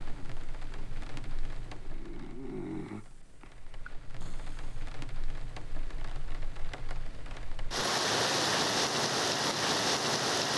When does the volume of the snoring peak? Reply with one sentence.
The loudest moment of the snoring is at 3 seconds.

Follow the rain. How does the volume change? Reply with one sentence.
The volume of the rain goes down, then up.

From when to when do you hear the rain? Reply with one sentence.
The rain can be heard from 0.0 to 10.5 s.